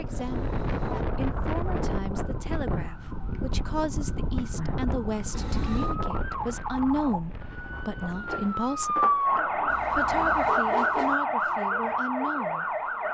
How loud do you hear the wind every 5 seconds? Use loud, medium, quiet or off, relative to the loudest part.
loud, medium, off.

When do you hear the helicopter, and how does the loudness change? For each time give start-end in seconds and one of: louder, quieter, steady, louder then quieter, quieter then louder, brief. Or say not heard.
not heard.